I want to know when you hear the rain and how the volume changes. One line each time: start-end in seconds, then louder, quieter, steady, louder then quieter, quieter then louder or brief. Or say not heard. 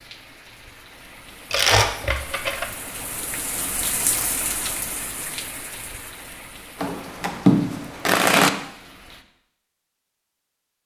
0.0-9.2 louder then quieter.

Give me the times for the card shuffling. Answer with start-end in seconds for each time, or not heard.
1.5-2.7, 6.8-8.5.